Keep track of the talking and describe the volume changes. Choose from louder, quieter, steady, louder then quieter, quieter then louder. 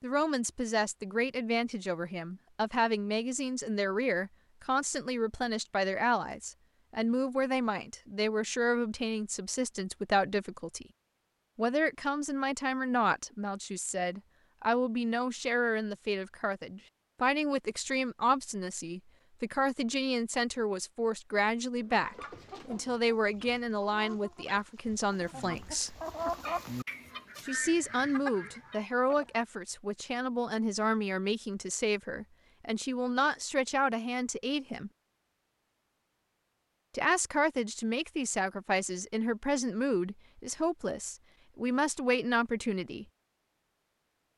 steady.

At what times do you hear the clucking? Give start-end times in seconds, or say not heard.
21.8-29.4.